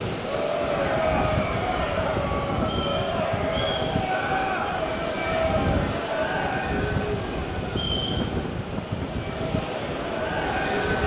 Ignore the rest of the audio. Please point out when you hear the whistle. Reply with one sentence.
The whistle can be heard from 2.6 to 3.9 s and from 7.7 to 8.3 s.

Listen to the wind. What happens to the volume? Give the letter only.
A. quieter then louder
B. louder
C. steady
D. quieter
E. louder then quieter
C.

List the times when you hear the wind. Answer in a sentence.
The wind can be heard from 0.0 to 11.0 s.